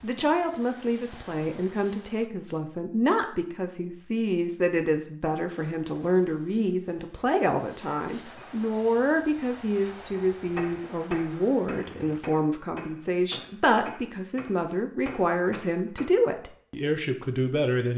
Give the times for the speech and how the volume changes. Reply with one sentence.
You can hear the speech from 0.0 to 17.9 s, at a steady volume.